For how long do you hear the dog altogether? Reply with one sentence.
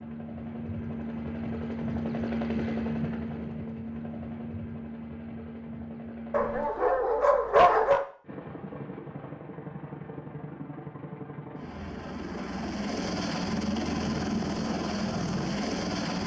You can hear the dog for 2 seconds altogether.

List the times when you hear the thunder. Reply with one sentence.
The thunder can't be heard in this clip.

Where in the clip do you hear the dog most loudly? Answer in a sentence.
The volume of the dog peaks at 8 seconds.